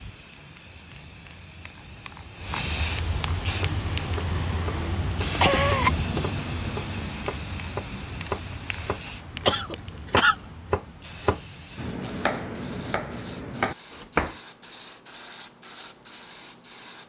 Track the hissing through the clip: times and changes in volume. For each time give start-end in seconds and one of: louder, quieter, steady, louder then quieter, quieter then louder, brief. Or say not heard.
0.0-17.0 quieter.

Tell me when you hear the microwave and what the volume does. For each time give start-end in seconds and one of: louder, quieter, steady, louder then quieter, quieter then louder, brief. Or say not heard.
not heard.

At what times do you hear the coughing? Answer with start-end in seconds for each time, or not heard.
5.3-6.2, 9.4-10.3.